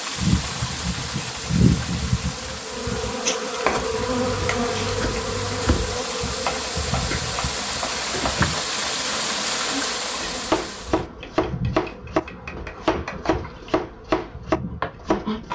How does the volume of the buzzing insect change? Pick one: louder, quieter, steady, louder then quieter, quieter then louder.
quieter.